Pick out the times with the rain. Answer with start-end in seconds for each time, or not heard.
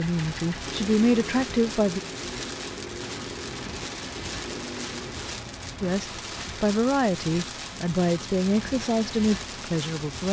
0.0-10.2.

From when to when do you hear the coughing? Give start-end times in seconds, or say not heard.
not heard.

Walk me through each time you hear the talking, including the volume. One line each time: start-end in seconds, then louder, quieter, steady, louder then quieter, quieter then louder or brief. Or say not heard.
0.0-2.0 brief
5.8-10.2 steady.